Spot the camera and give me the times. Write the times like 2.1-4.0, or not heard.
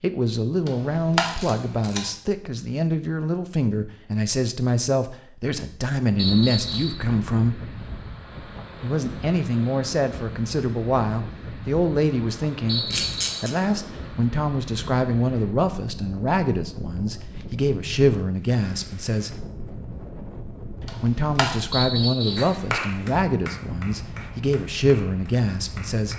0.7-2.1, 12.9-13.6, 20.9-21.6.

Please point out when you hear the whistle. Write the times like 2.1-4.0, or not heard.
6.2-7.0, 12.7-13.5, 21.7-22.6.